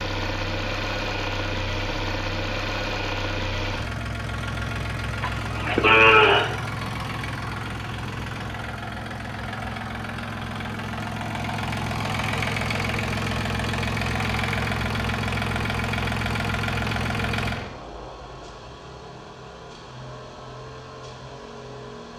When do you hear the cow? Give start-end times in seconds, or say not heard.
5.2-6.5.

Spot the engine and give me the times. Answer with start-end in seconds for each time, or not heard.
0.0-22.1.